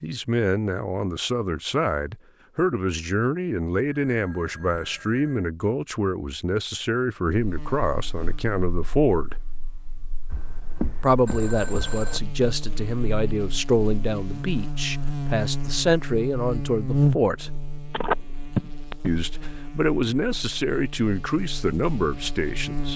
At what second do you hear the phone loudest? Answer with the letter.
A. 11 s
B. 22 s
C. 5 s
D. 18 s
D.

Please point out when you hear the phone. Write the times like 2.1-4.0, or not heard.
4.1-5.5, 10.3-12.2, 17.9-19.1.